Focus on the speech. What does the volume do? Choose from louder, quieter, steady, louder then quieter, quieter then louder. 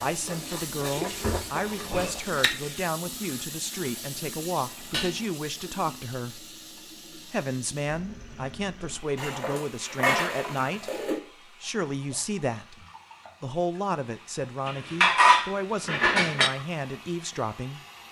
steady.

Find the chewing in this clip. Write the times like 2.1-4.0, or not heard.
0.1-2.5.